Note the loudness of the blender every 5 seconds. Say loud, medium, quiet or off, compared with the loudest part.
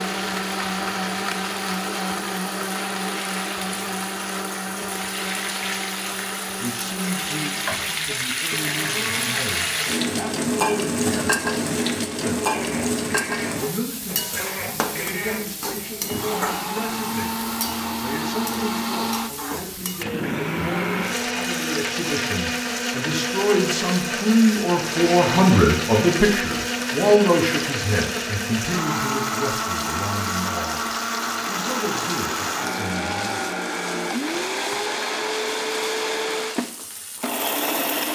loud, medium, medium, loud, loud, loud, loud, loud.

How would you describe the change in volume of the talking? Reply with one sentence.
The loudness of the talking goes up, then down.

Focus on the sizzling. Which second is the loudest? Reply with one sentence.
The loudest moment of the sizzling is at 11 seconds.